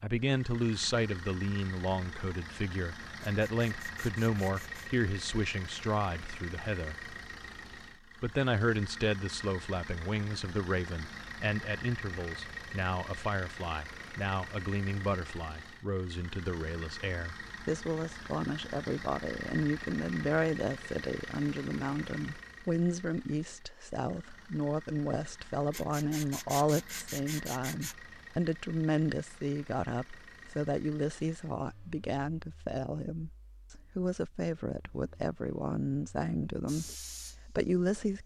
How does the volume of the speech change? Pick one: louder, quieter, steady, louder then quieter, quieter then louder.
steady.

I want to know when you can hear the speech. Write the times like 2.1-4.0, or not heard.
0.0-7.2, 8.2-38.2.